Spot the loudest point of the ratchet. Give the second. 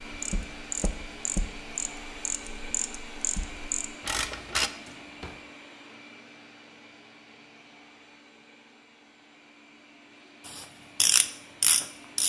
11 s.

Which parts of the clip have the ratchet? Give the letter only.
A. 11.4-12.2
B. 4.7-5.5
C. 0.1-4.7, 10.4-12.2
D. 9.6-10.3
C.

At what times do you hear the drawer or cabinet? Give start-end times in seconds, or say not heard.
4.7-5.5.